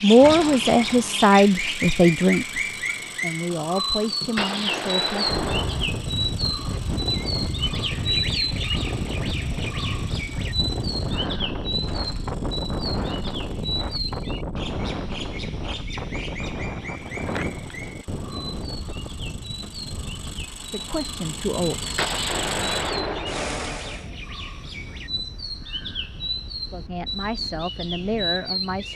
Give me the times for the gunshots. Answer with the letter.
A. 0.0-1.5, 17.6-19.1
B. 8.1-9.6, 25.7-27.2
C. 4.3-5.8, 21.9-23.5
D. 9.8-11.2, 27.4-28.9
C.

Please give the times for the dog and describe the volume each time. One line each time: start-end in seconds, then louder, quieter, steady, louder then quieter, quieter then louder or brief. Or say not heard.
not heard.